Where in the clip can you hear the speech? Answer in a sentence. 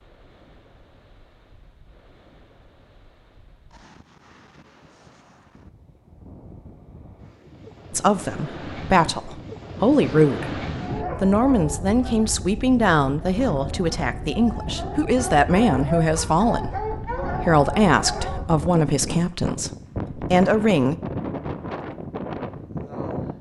The speech can be heard from 7.9 to 10.6 s and from 11.2 to 20.9 s.